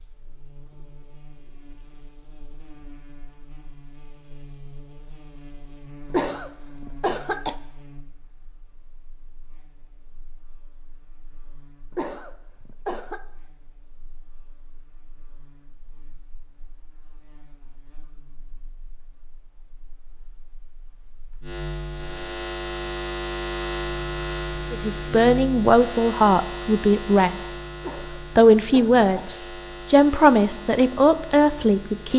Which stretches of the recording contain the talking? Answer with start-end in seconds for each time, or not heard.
24.7-27.5, 28.4-32.1.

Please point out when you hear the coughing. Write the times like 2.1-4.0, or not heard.
6.1-7.5, 11.9-13.2, 27.8-29.4.